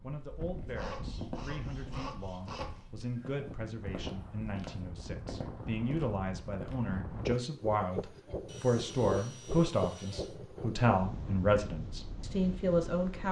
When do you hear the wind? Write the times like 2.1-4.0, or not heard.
0.1-13.2.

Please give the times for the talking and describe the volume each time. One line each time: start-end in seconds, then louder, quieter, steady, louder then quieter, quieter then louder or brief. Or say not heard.
0.0-13.2 louder.